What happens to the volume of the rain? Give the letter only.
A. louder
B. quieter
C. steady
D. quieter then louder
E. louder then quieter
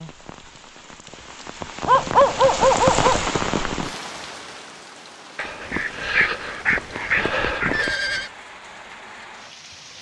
E.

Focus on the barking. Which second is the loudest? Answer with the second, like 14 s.
2 s.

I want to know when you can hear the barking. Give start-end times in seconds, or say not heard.
1.9-3.3, 5.3-8.0.